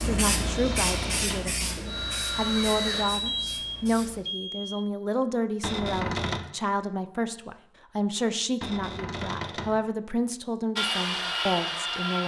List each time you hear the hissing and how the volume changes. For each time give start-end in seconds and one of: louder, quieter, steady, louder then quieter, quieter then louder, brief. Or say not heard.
0.0-4.2 quieter.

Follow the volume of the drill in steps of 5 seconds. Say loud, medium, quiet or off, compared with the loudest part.
loud, off, loud.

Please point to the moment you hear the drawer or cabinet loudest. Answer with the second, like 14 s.
6 s.